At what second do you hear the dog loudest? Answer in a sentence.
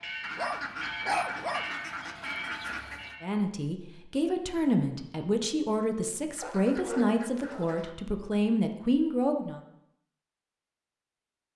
The volume of the dog peaks at 1 second.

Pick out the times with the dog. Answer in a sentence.
The dog can be heard from 0.3 to 1.7 s and from 6.4 to 7.8 s.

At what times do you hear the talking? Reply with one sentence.
You can hear the talking from 3.2 to 9.6 s.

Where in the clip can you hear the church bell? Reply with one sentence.
The church bell can be heard from 0.0 to 3.3 s.